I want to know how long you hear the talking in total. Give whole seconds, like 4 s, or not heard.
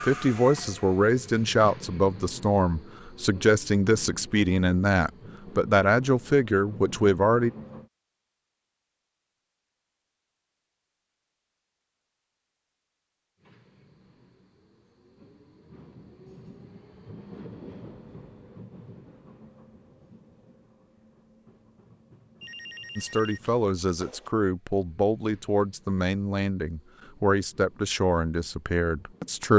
14 s.